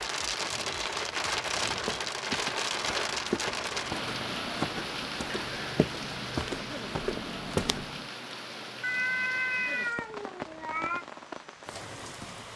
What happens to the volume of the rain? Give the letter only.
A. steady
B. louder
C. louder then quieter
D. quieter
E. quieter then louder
D.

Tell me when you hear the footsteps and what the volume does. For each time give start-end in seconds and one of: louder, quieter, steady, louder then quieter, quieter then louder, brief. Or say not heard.
1.6-8.1 louder.